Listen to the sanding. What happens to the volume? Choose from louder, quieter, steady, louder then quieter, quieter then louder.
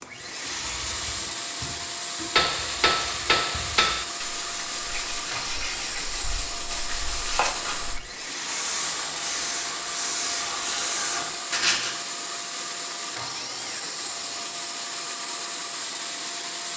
louder.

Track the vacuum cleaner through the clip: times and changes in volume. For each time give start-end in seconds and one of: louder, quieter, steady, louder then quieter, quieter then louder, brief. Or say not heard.
0.0-16.7 steady.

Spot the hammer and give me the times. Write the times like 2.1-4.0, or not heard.
2.4-4.0.